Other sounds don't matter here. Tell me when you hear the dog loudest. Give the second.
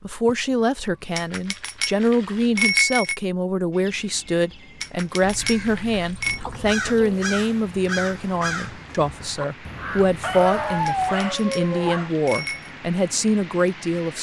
11 s.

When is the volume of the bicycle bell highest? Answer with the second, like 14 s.
3 s.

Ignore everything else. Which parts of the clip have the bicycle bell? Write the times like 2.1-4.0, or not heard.
1.1-3.1, 4.8-6.4, 10.8-12.7.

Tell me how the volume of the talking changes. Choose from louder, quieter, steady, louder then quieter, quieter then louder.
steady.